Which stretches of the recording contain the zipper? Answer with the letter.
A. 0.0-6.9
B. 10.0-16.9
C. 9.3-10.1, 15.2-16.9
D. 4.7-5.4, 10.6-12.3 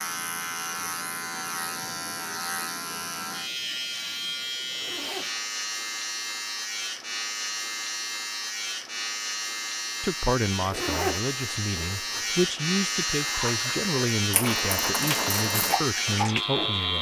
D.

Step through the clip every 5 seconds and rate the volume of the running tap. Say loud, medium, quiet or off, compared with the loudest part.
off, off, loud, loud.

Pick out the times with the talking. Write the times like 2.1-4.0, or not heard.
10.0-16.9.